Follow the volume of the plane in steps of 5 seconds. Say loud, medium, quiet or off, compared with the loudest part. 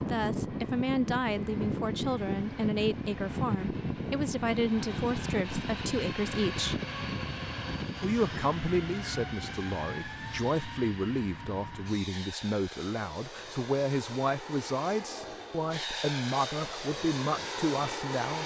loud, loud, medium, loud.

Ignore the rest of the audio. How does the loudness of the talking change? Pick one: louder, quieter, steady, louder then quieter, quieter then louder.
steady.